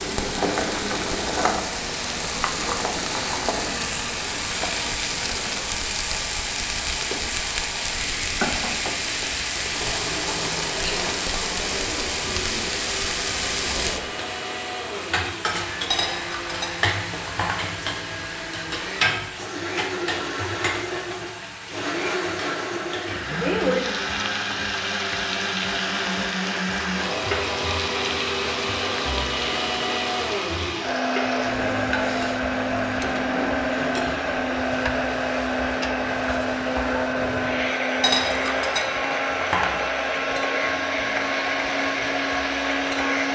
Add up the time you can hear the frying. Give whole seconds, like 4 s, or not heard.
43 s.